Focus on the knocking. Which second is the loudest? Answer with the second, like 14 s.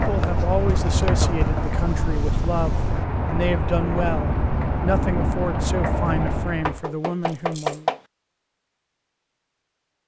8 s.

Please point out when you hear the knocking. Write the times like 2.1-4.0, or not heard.
0.8-1.8, 6.7-8.0.